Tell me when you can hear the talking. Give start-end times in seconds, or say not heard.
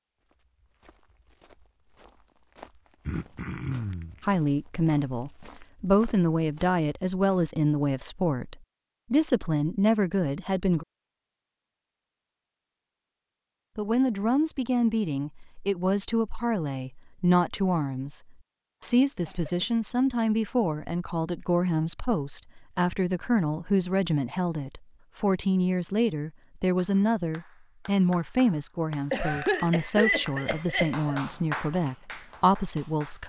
4.2-10.8, 13.8-33.2.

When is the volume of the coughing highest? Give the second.
30 s.